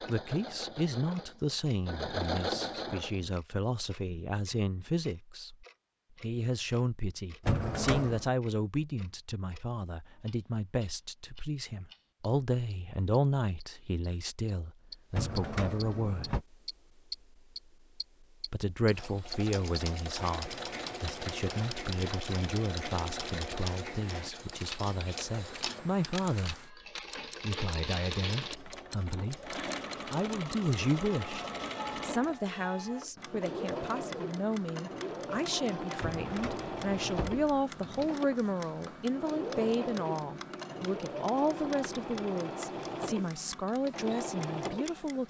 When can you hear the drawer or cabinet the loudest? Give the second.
8 s.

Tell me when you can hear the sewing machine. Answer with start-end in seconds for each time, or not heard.
0.0-3.4, 18.9-45.0.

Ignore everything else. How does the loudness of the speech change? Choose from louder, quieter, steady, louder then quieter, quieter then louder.
steady.